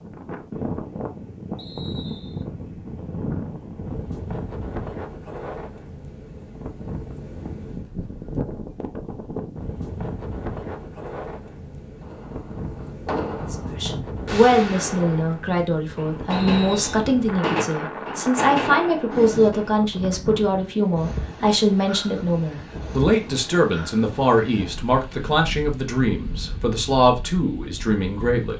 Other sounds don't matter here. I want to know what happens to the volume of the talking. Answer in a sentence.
The loudness of the talking stays about the same.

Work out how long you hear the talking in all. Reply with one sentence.
The talking can be heard for 15 seconds in total.